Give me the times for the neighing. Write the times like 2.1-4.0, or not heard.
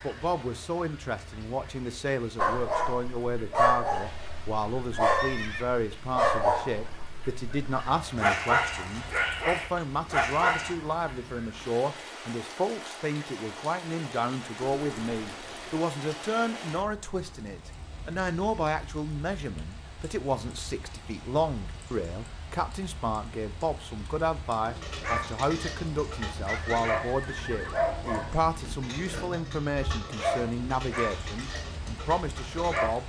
4.9-5.7, 14.8-15.8, 26.4-27.9.